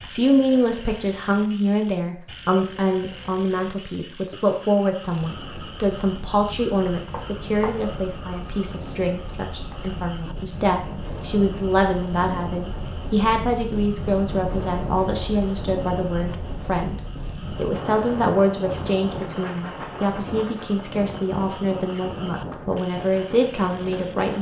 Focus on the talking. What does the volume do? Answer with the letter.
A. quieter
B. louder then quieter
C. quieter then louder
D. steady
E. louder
D.